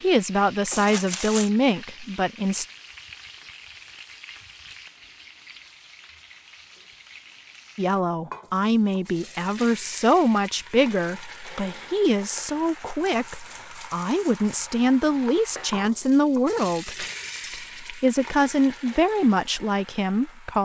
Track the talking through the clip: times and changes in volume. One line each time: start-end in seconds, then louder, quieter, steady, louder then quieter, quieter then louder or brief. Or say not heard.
0.0-2.6 brief
7.8-20.5 steady.